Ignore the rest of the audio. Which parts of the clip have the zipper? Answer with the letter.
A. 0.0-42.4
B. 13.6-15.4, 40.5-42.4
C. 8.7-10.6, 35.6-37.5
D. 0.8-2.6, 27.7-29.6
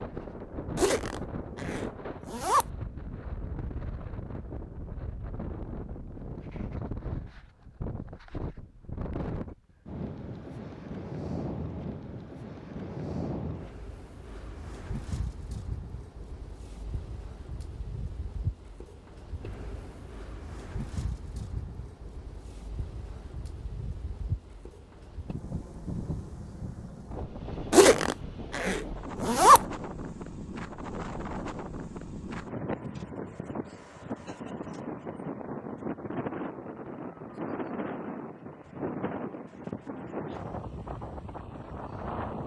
D.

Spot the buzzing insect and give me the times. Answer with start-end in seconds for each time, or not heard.
not heard.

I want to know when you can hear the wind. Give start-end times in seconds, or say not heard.
0.0-42.4.